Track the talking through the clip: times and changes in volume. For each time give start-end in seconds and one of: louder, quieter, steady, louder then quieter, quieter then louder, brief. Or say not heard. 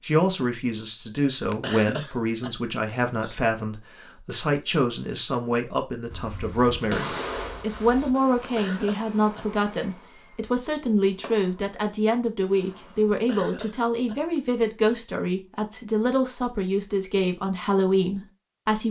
0.0-18.8 steady.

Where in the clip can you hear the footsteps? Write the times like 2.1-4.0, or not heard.
not heard.